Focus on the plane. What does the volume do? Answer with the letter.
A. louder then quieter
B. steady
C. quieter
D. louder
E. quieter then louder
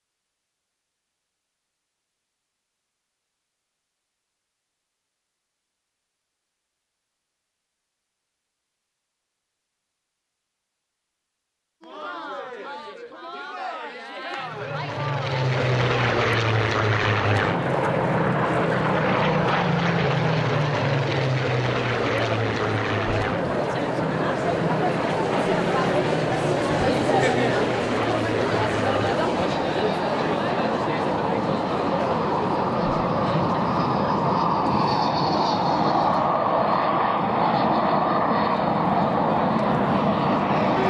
E.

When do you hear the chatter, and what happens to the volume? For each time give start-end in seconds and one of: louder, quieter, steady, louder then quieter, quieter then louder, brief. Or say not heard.
11.8-40.8 louder then quieter.